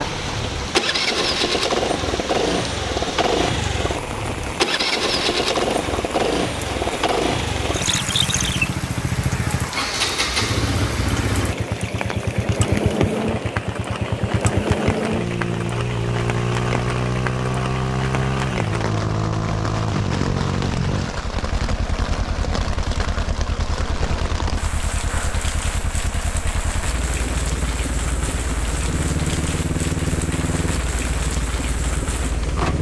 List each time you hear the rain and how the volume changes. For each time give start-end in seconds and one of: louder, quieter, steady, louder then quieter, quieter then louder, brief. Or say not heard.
0.0-32.7 steady.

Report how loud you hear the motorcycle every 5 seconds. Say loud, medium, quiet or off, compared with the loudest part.
loud, loud, loud, loud, medium, medium, medium.